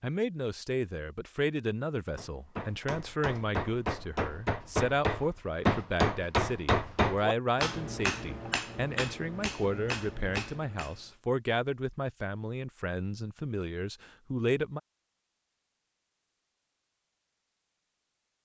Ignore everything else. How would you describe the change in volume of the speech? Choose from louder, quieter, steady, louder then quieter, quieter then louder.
steady.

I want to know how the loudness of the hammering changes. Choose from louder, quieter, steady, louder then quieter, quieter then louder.
louder then quieter.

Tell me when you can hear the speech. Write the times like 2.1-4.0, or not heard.
0.0-14.8.